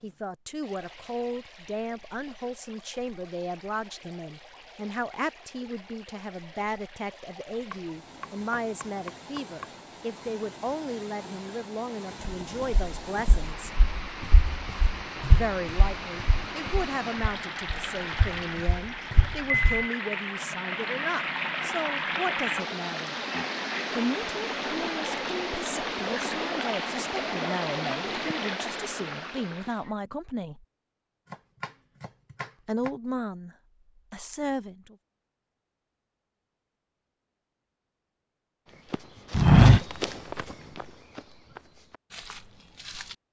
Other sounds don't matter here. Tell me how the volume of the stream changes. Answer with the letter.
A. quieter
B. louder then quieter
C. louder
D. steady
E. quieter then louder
C.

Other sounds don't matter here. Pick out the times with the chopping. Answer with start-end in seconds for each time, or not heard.
7.7-9.7, 31.3-32.9.